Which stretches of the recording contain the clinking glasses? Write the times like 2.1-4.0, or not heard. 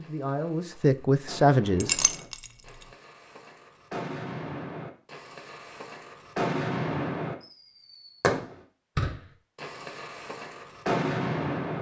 1.8-2.5.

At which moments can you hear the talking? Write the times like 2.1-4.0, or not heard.
0.0-2.0.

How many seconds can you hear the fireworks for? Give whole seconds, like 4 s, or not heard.
12 s.